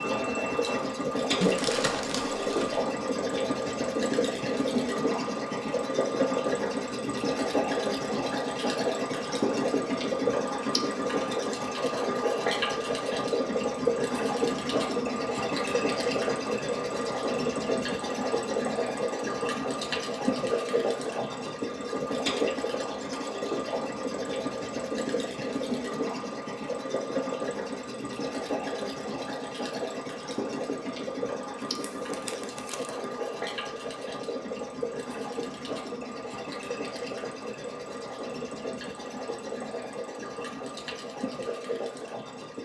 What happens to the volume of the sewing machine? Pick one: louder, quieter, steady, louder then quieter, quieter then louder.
quieter.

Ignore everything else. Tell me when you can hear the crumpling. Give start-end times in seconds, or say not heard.
1.4-2.8, 31.8-32.9.